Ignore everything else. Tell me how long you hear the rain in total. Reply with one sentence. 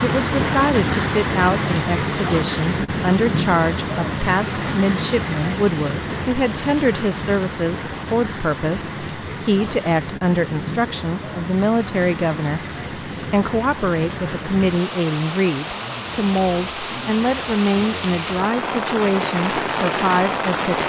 The rain can be heard for 21 seconds in total.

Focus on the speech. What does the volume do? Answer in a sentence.
The loudness of the speech stays about the same.